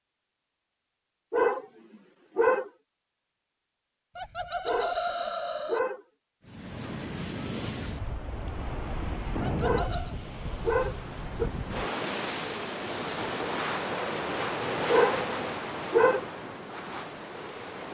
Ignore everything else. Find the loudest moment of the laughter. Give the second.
5 s.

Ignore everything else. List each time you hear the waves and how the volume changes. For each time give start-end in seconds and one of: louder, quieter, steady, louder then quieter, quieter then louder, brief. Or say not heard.
6.5-17.9 louder then quieter.